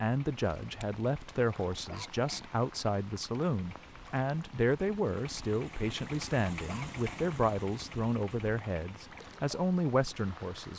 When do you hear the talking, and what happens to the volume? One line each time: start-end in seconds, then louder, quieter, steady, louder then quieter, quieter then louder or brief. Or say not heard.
0.0-10.7 steady.